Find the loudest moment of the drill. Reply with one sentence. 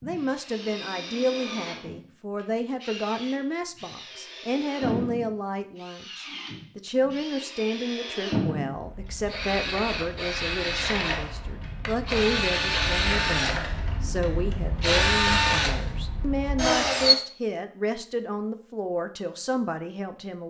The loudest moment of the drill is at 15 seconds.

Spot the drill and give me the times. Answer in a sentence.
You can hear the drill from 0.0 to 17.1 s.